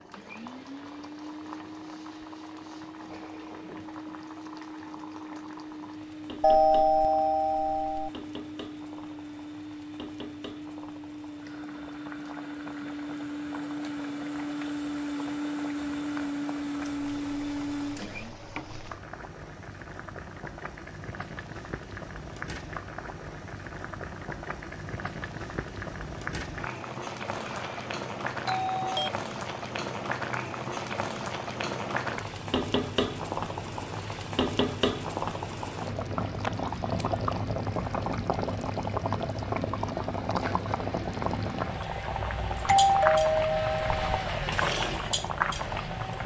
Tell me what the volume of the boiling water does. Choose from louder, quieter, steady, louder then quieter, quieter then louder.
louder.